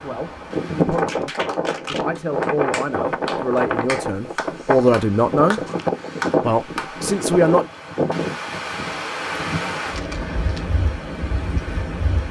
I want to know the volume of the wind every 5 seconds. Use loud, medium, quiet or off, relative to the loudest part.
loud, loud, medium.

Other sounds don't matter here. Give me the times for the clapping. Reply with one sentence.
The clapping can be heard from 0.9 to 7.0 s.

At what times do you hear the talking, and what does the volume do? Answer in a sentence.
The talking can be heard from 0.0 to 5.6 s, getting louder; and briefly from 6.4 to 7.7 s.